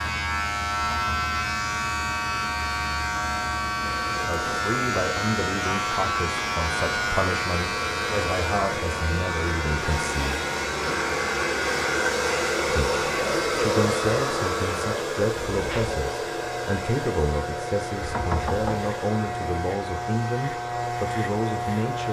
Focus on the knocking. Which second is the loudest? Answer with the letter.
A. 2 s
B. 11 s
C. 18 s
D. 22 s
C.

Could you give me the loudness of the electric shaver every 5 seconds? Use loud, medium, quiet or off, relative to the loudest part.
loud, loud, medium, medium, loud.